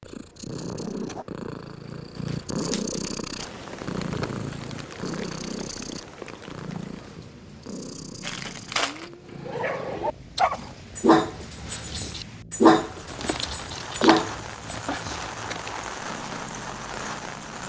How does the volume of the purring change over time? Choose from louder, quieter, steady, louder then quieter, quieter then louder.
quieter.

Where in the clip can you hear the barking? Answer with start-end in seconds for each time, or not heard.
9.4-14.9.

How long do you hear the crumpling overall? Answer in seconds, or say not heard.
5 s.